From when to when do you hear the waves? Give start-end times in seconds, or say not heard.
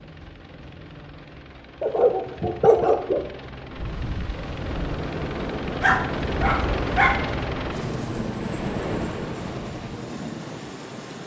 3.6-11.2.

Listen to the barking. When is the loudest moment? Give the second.
3 s.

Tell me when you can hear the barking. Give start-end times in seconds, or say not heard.
1.8-3.2, 5.8-7.2.